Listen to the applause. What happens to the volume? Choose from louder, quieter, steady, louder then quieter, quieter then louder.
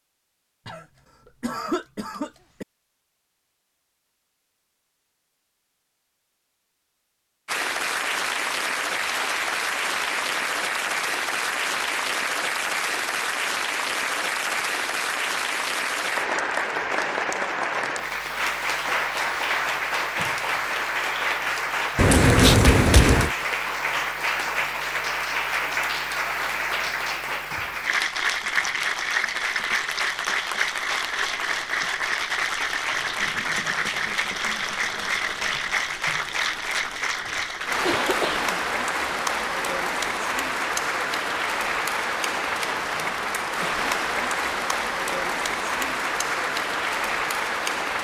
steady.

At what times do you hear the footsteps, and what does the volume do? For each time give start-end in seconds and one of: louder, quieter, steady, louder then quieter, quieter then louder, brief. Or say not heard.
not heard.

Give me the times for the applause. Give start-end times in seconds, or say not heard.
7.5-47.9.